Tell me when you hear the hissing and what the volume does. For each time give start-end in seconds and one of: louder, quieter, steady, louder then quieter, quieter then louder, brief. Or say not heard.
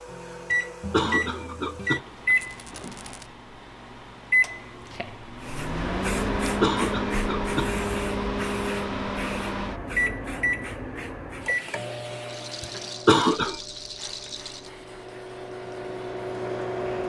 5.4-17.0 quieter.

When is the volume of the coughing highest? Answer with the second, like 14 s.
13 s.